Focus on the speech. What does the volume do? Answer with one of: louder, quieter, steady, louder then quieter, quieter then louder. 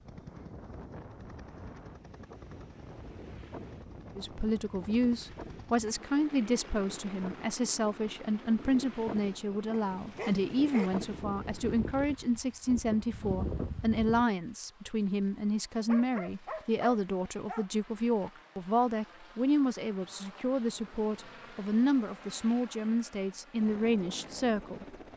steady.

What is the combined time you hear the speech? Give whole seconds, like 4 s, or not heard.
21 s.